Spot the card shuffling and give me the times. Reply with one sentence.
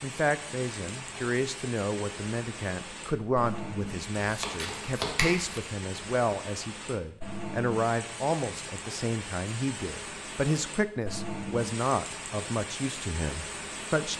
You can hear the card shuffling from 4.2 to 5.6 s.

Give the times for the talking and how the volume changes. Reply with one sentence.
The talking can be heard from 0.0 to 14.1 s, at a steady volume.